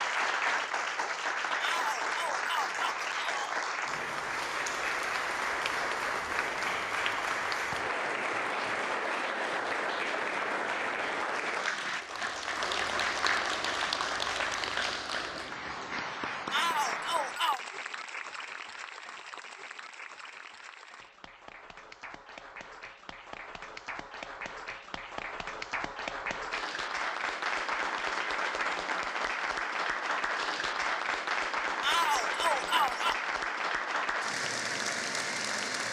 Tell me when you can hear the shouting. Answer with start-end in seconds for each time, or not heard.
1.6-3.6, 16.5-17.6, 31.8-33.1.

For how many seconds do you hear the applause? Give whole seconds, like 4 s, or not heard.
36 s.